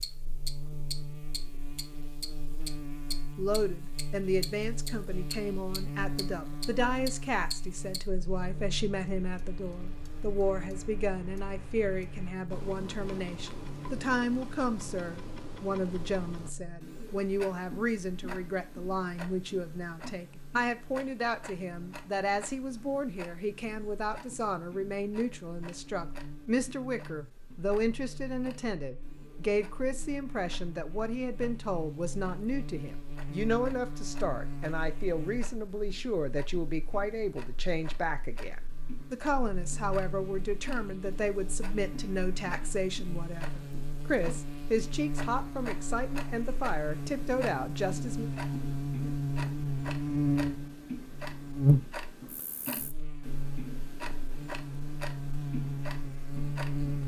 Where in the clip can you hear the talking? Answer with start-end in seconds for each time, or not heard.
3.4-48.3.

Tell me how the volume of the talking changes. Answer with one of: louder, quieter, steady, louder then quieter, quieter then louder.
steady.